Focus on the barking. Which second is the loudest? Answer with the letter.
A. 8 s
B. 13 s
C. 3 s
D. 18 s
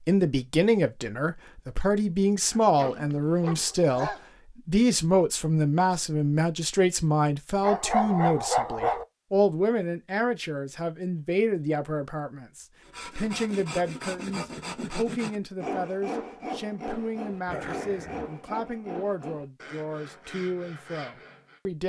A.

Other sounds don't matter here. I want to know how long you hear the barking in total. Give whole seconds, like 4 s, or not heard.
4 s.